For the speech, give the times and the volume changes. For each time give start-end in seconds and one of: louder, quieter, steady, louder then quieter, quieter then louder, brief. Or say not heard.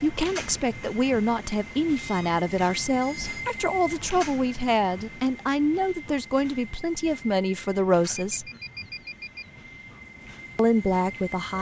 0.0-8.4 steady
10.6-11.5 brief.